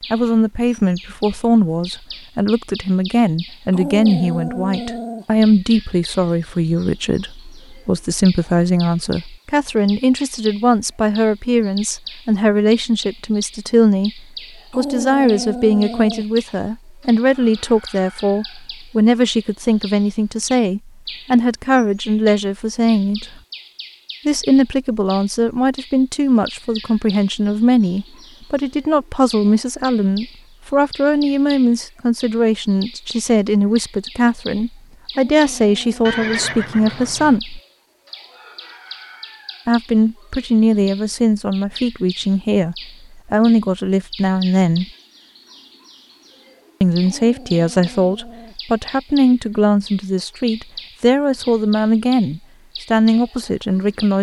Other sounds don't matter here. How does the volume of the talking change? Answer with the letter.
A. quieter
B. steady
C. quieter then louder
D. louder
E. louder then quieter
B.